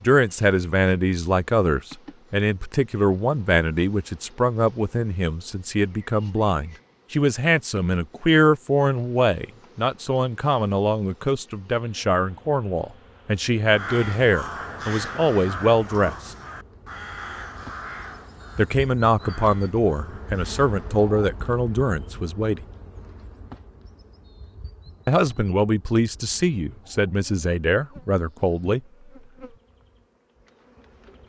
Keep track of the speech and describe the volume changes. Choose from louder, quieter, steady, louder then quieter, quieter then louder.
steady.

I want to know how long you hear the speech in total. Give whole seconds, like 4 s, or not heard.
24 s.